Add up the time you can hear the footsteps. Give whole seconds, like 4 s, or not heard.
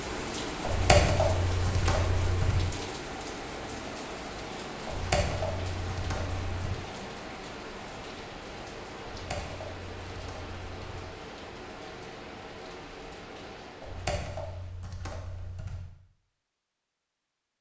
not heard.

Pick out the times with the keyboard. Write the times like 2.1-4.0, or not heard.
0.6-2.6, 4.8-6.7, 9.1-11.1, 13.8-15.8.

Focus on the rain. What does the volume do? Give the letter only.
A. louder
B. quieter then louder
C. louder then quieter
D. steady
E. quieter
E.